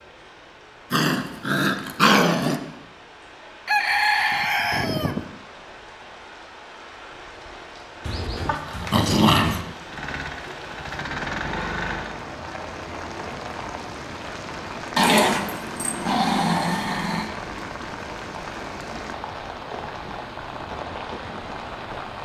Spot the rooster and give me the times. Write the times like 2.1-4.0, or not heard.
3.6-5.2.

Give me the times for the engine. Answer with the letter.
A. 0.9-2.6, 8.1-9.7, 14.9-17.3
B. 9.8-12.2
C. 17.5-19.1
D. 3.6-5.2
B.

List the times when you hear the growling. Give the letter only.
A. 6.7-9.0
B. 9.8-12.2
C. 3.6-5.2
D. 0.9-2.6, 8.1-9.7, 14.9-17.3
D.